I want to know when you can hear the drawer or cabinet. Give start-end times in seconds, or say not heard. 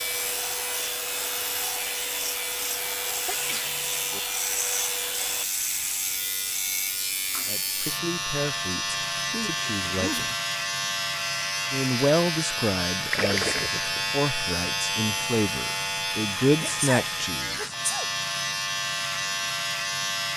not heard.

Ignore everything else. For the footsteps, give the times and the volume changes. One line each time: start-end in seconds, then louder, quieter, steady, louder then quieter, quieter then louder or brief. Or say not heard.
not heard.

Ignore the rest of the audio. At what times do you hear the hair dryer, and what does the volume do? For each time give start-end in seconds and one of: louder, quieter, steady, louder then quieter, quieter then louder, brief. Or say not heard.
0.0-5.5 steady.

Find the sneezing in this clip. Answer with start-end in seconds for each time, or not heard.
3.2-4.2, 9.2-10.3, 16.6-18.1.